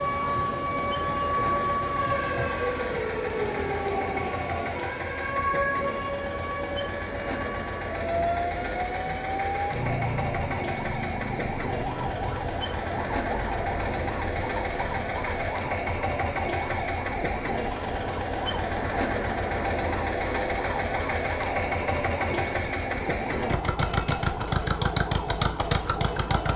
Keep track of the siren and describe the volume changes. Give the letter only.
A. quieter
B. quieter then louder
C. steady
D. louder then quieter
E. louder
A.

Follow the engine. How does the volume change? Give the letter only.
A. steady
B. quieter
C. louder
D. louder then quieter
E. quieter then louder
C.